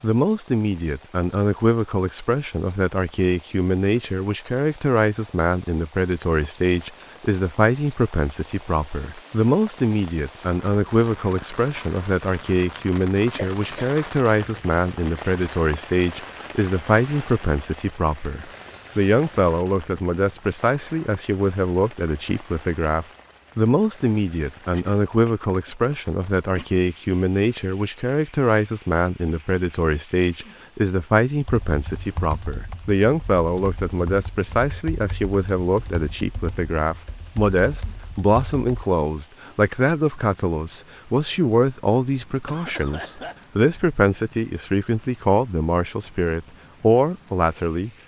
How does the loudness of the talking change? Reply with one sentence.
The volume of the talking stays about the same.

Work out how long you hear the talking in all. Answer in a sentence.
The talking can be heard for 48 seconds in total.